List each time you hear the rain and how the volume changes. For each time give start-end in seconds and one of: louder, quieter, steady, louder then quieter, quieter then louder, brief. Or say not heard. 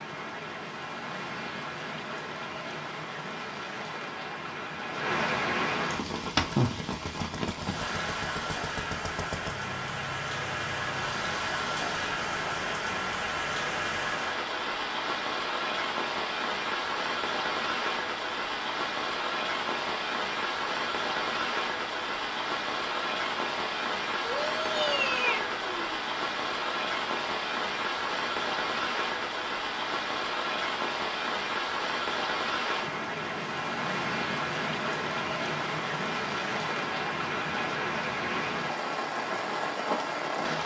0.0-40.6 steady.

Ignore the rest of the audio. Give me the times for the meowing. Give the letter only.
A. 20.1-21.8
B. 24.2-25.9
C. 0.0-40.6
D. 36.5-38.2
B.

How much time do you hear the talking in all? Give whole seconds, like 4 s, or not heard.
not heard.